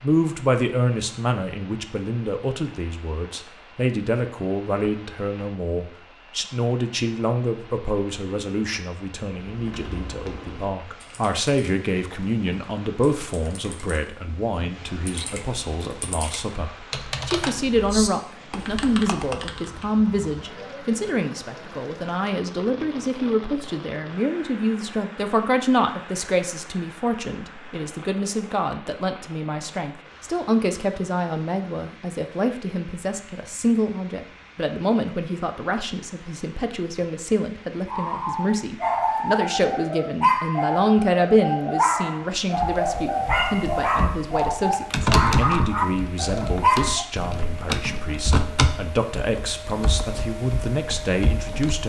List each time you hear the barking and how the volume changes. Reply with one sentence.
You can hear the barking from 37.9 to 47.0 s, at a steady volume.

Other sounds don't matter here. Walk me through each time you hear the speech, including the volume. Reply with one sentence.
You can hear the speech from 0.0 to 51.8 s, at a steady volume.